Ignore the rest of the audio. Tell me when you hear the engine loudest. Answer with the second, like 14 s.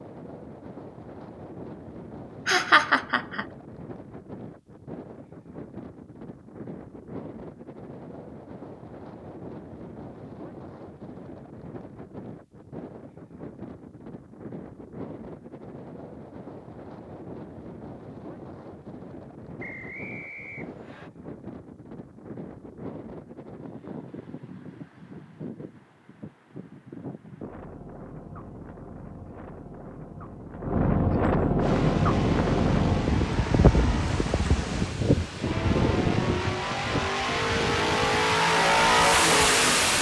39 s.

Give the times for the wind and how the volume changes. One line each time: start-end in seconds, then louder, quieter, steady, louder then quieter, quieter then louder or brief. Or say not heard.
0.0-39.9 louder.